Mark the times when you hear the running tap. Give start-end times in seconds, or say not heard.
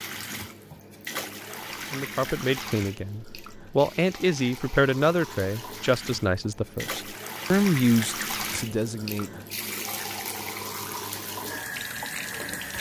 0.0-12.7.